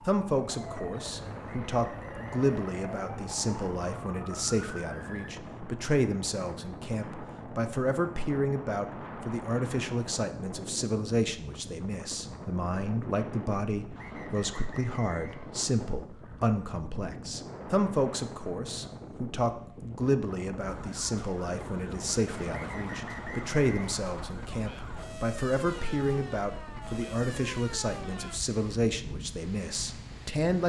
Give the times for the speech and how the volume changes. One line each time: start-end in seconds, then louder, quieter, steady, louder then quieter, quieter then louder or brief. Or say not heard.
0.1-30.6 steady.